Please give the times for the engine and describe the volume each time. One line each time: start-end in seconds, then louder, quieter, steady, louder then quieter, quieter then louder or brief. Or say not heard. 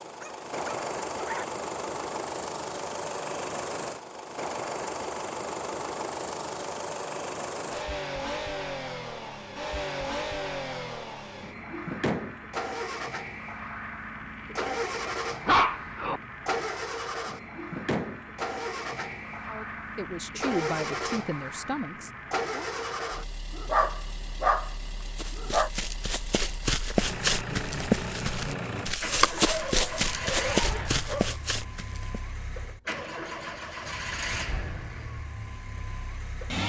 0.0-36.6 steady.